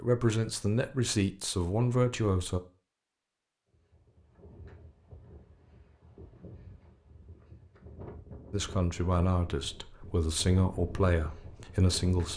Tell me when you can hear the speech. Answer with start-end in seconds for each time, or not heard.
0.0-2.6, 8.5-12.3.